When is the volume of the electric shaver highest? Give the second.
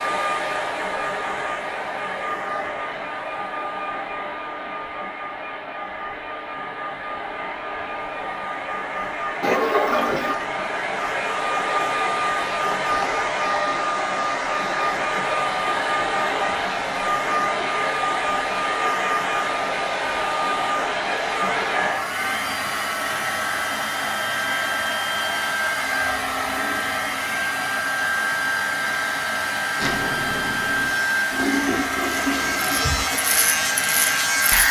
34 s.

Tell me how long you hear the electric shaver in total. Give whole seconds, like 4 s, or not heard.
5 s.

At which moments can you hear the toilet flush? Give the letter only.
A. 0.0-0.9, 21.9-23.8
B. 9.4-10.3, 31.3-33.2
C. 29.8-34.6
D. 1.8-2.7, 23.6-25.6
B.